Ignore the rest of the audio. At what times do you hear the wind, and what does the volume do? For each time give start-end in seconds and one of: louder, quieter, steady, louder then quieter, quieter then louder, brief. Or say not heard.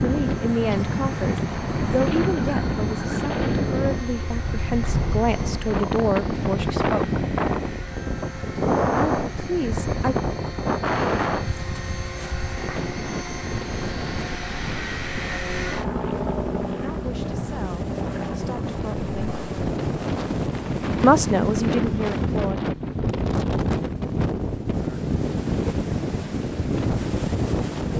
0.0-27.9 quieter then louder.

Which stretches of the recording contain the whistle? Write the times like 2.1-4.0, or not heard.
not heard.